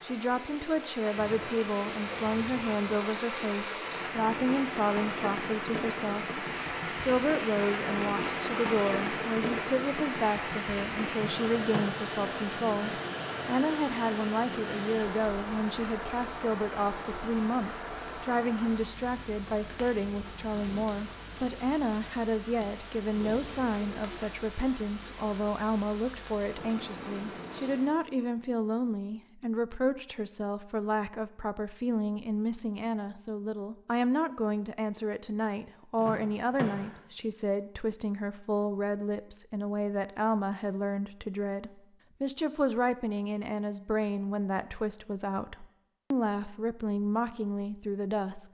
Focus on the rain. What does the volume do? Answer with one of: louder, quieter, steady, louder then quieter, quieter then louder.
quieter.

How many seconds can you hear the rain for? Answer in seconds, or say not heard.
28 s.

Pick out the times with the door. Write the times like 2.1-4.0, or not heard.
11.1-12.1, 36.0-37.0.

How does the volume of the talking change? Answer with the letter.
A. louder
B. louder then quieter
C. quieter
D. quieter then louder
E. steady
E.